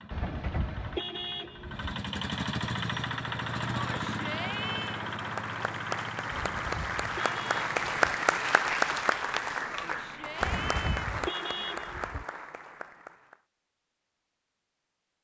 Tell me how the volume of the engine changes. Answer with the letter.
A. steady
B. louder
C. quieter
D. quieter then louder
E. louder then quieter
E.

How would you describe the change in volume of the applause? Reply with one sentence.
The loudness of the applause goes up, then down.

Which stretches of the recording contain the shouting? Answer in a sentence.
You can hear the shouting from 3.8 to 5.0 s and from 9.8 to 11.1 s.